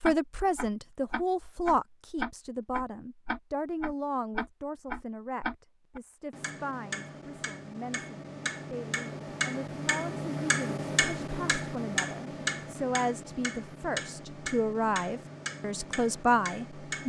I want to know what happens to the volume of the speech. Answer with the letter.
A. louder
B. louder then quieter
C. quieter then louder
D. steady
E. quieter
C.